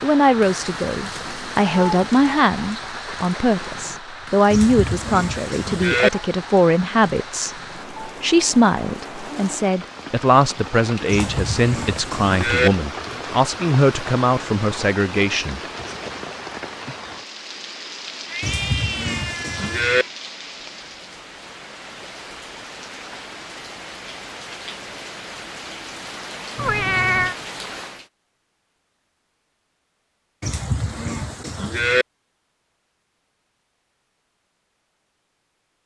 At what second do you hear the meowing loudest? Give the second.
27 s.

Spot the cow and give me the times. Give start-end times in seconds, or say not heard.
4.5-6.1, 11.1-12.7, 18.4-20.1, 30.4-32.0.